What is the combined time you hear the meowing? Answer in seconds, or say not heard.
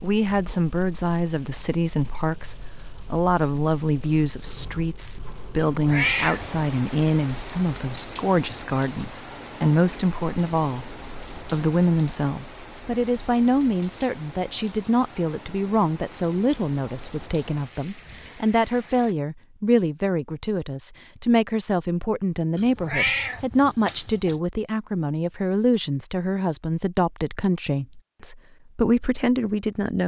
3 s.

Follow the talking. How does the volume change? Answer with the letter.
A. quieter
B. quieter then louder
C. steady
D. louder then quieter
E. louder
C.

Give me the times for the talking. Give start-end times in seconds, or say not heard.
0.0-30.0.